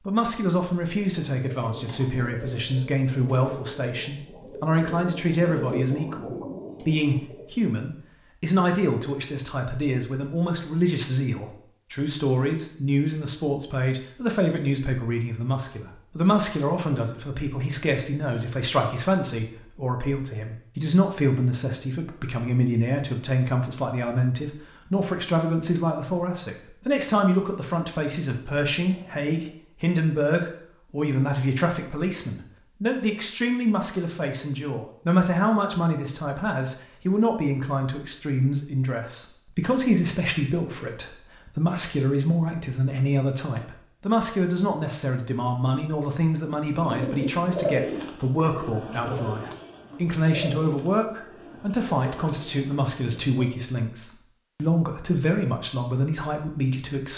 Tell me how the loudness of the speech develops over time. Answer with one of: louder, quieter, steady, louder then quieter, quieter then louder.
steady.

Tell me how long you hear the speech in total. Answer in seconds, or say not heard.
57 s.